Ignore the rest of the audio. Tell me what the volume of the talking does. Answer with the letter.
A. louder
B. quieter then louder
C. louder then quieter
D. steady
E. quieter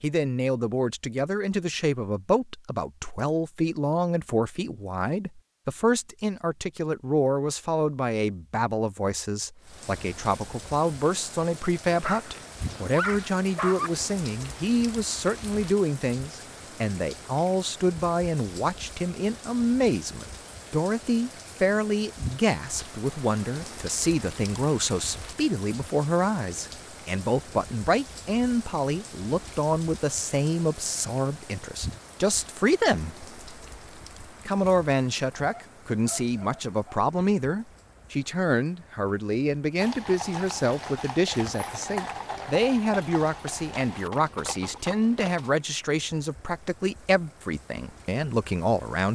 D.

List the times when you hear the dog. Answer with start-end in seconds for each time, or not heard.
11.9-13.9, 35.4-37.0.